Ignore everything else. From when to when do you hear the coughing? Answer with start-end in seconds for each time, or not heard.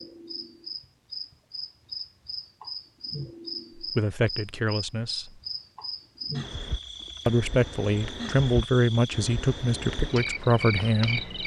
not heard.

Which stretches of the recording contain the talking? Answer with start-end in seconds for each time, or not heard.
3.8-5.4, 7.2-11.4.